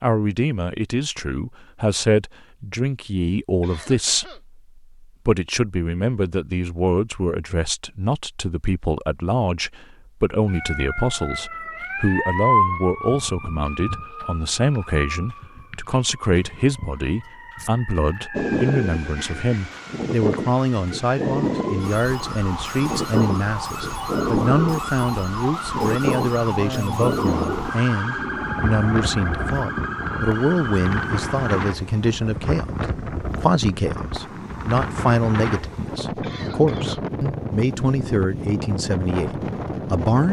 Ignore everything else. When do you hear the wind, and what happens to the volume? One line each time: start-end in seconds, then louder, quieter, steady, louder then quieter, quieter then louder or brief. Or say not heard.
18.3-40.2 steady.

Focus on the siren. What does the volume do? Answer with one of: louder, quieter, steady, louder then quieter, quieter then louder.
quieter then louder.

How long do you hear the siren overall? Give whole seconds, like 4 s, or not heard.
21 s.